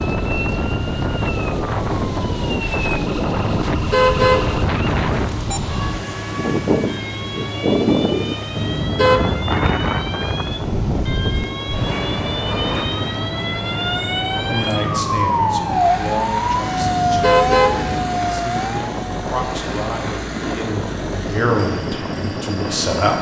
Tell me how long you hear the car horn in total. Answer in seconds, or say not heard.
4 s.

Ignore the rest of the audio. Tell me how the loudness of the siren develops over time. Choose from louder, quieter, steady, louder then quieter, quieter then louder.
louder.